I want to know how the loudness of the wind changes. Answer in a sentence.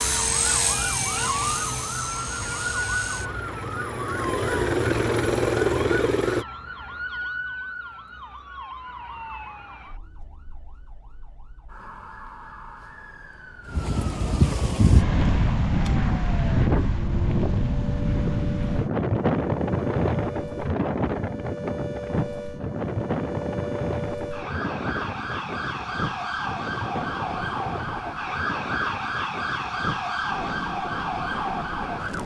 The loudness of the wind goes down.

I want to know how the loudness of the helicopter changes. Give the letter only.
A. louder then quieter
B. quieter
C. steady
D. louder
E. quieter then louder
E.